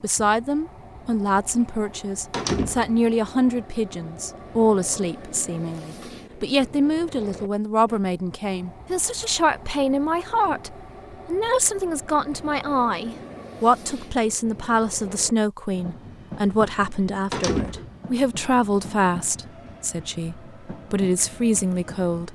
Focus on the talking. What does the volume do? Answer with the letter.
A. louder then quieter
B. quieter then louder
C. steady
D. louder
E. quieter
C.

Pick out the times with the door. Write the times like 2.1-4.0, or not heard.
2.3-3.0, 10.2-10.7, 17.3-17.9.